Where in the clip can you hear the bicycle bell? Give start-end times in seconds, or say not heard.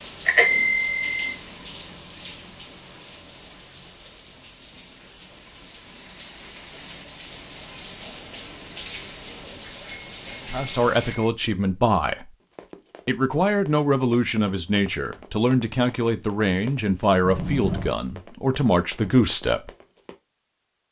0.2-1.3, 9.6-11.2, 17.2-17.9.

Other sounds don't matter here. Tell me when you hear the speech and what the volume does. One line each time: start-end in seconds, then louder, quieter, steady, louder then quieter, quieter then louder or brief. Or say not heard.
10.5-12.3 brief
13.1-19.7 steady.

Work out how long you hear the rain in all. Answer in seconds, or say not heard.
11 s.